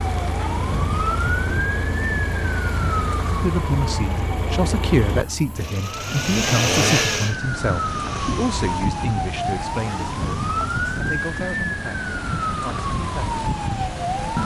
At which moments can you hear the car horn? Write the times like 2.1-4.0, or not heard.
not heard.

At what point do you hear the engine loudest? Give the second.
7 s.